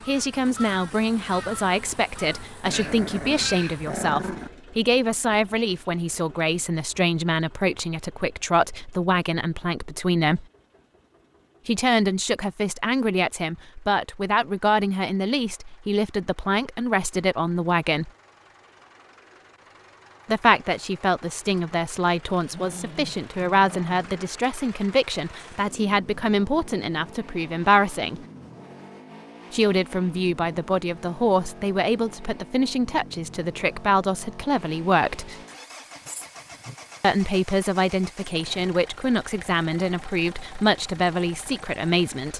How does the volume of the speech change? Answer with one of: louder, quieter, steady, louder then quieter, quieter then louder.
steady.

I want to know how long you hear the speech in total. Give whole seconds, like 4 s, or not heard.
36 s.